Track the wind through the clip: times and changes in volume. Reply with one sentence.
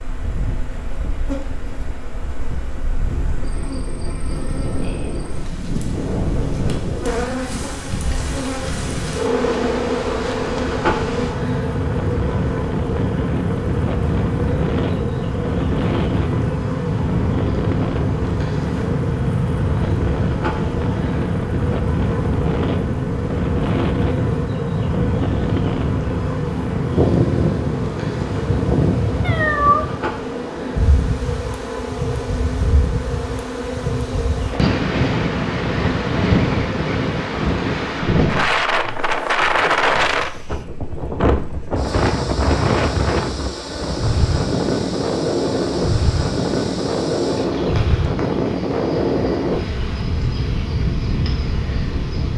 You can hear the wind from 0.0 to 52.3 s, getting louder.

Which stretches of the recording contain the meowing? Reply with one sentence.
You can hear the meowing from 29.2 to 29.9 s.